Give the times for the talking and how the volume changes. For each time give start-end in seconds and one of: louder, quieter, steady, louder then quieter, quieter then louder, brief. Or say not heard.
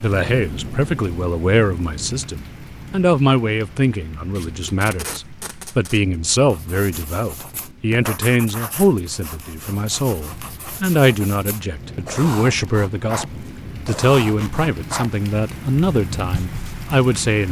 0.0-17.4 steady.